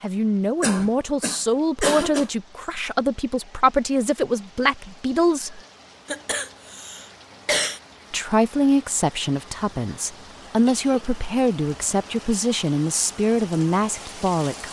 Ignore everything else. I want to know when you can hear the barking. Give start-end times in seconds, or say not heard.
not heard.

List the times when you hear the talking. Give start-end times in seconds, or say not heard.
0.0-5.6, 8.1-14.6.